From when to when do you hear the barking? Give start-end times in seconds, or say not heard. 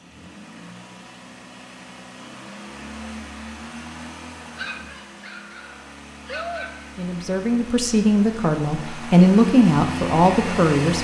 4.5-6.8.